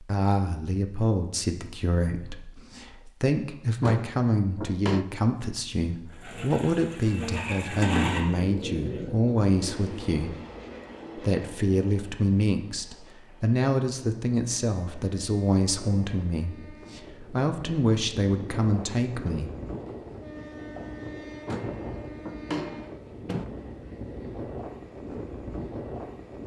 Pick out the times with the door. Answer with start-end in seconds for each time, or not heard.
3.8-5.0, 21.4-23.4.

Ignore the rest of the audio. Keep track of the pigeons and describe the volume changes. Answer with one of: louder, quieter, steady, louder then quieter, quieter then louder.
louder then quieter.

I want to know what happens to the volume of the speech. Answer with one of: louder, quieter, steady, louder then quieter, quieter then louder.
steady.